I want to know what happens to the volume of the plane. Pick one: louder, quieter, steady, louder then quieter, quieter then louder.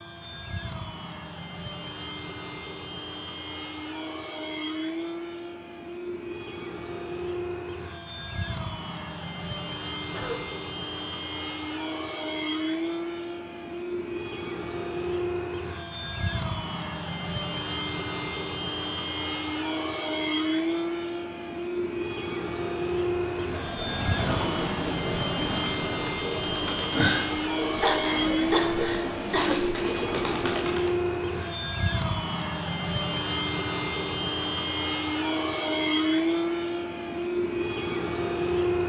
louder.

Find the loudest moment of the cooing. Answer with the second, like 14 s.
27 s.